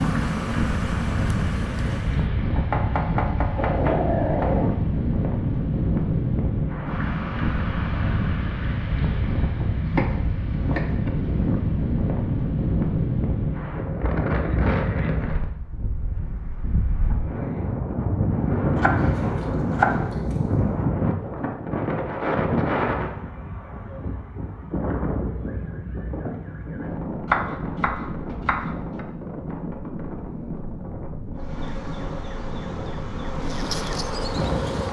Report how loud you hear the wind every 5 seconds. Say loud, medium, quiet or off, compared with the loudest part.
loud, loud, loud, loud, loud, medium, medium.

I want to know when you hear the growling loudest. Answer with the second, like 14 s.
4 s.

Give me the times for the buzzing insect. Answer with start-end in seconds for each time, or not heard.
0.0-2.2, 31.4-34.8.